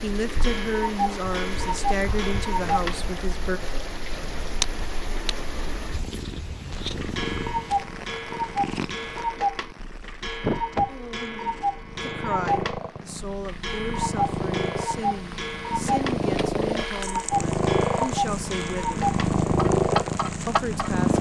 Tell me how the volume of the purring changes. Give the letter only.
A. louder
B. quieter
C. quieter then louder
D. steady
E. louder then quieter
A.